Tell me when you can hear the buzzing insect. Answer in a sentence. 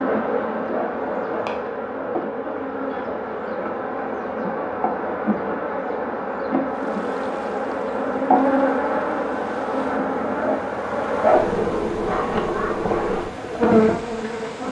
You can hear the buzzing insect from 0.0 to 14.6 s.